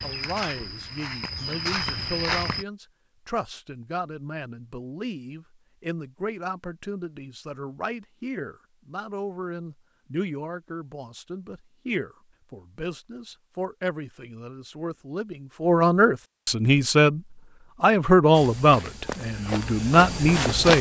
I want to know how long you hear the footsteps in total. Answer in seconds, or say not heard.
5 s.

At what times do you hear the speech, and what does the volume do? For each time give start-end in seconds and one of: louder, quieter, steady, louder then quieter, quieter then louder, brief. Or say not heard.
0.0-17.2 louder
17.8-20.7 brief.